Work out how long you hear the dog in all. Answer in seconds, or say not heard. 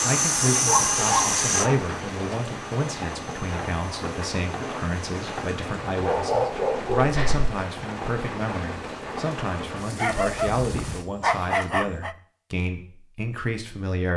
5 s.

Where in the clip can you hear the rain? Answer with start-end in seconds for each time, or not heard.
0.0-11.1.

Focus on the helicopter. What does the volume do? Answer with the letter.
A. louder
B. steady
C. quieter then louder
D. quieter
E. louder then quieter
D.